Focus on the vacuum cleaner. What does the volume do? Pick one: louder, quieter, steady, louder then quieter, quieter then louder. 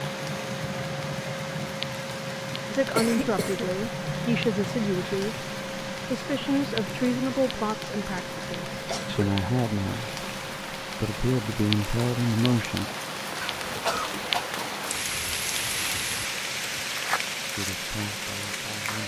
quieter.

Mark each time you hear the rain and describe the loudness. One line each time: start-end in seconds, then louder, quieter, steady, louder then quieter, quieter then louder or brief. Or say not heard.
0.0-19.0 louder.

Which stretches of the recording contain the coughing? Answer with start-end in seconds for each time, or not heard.
3.0-3.8, 8.2-9.2, 13.4-14.4.